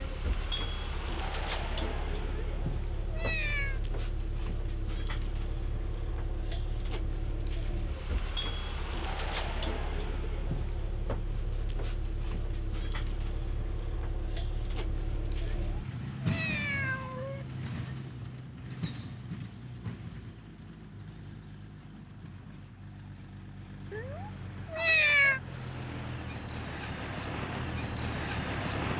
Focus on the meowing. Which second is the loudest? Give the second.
25 s.